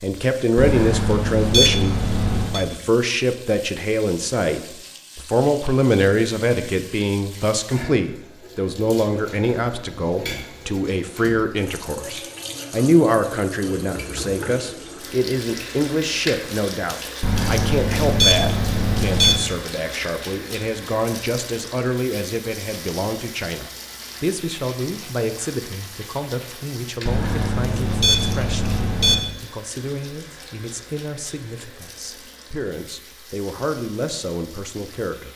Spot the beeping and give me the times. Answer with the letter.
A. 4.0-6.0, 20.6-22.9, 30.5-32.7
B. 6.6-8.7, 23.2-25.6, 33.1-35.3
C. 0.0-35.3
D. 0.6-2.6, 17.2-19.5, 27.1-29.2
D.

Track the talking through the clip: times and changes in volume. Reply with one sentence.
You can hear the talking from 0.0 to 35.3 s, getting quieter.